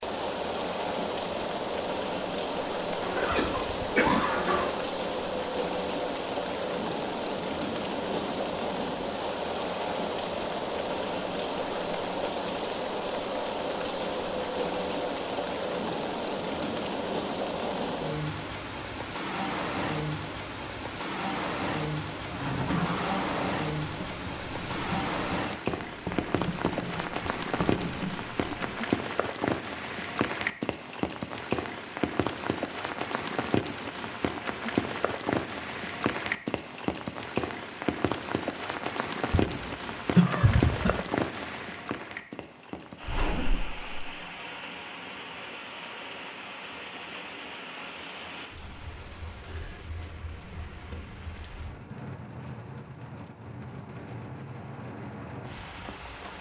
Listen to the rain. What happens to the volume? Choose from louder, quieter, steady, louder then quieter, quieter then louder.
quieter.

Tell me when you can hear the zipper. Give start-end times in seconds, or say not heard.
3.0-4.7, 22.2-23.6, 43.0-44.0.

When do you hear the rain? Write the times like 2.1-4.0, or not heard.
0.0-56.3.